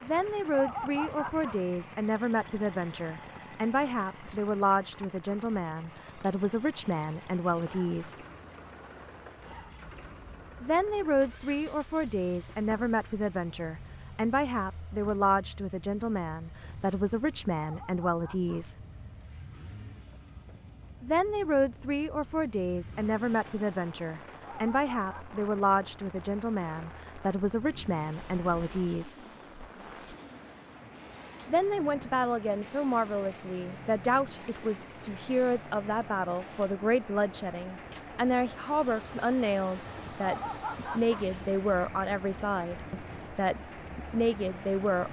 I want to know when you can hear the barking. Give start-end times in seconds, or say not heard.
0.5-1.6, 17.6-18.6, 24.4-25.4, 40.2-41.2.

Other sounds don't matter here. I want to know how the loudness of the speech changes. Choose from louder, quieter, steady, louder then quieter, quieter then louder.
steady.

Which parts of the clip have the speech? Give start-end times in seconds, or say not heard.
0.0-8.2, 10.6-18.8, 21.0-29.1, 31.4-45.0.